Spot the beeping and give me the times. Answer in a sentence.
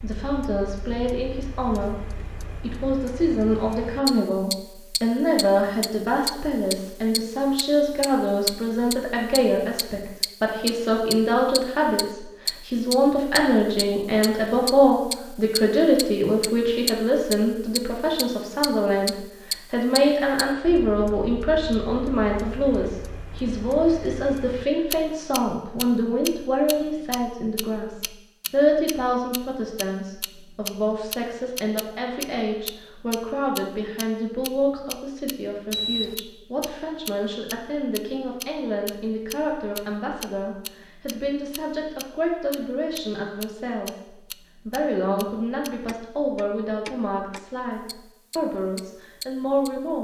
The beeping can be heard from 35.7 to 36.1 s.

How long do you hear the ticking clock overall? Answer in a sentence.
You can hear the ticking clock for 50 seconds altogether.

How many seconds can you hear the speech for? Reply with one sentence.
You can hear the speech for 50 seconds altogether.